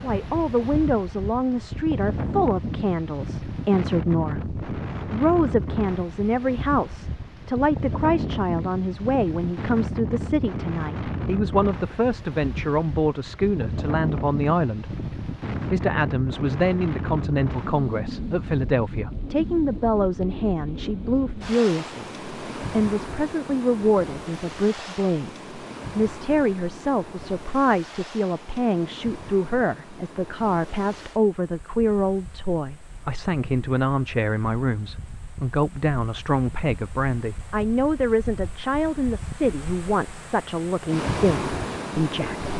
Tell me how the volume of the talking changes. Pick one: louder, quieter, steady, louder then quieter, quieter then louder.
steady.